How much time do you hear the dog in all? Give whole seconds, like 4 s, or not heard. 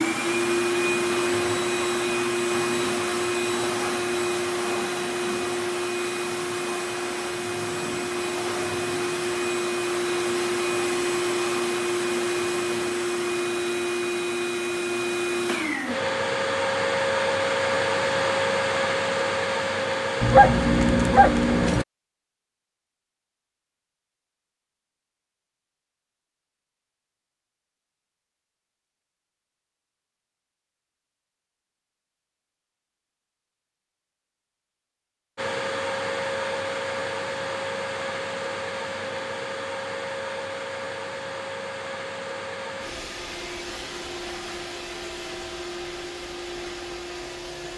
2 s.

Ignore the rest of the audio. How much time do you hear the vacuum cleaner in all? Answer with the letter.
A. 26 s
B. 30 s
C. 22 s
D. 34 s
D.